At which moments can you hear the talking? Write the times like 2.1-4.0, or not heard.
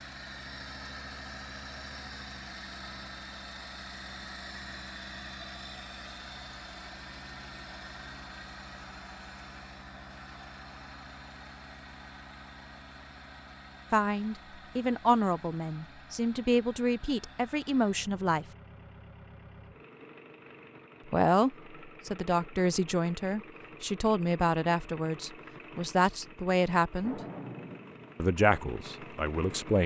13.9-18.4, 21.1-27.2, 28.1-29.8.